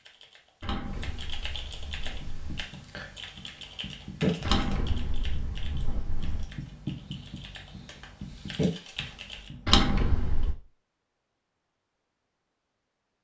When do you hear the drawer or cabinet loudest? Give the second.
10 s.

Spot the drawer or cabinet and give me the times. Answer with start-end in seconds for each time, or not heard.
0.6-2.6, 4.4-6.5, 9.7-10.6.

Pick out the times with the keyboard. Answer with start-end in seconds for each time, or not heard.
0.0-9.5.